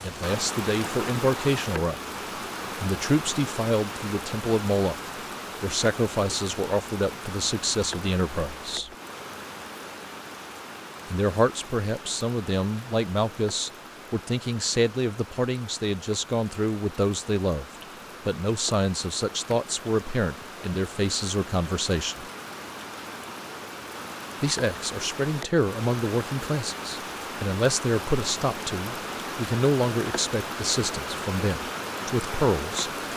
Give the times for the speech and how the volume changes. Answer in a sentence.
The speech can be heard briefly from 0.0 to 2.0 s; from 2.8 to 8.9 s, at a steady volume; from 11.1 to 22.2 s, at a steady volume; and from 24.4 to 32.9 s, at a steady volume.